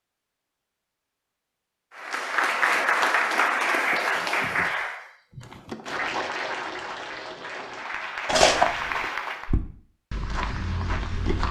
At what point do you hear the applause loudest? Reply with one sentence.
The loudest moment of the applause is at 3 seconds.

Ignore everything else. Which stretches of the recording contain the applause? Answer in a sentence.
The applause can be heard from 1.9 to 9.6 s.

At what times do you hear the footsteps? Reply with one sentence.
You can hear the footsteps from 8.2 to 11.4 s.